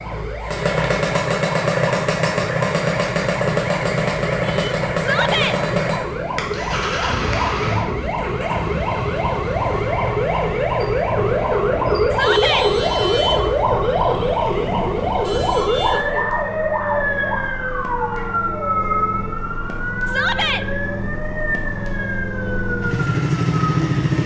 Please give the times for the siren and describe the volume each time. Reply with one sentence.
The siren can be heard from 0.0 to 24.1 s, getting louder then quieter.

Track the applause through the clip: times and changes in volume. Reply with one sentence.
You can't hear the applause here.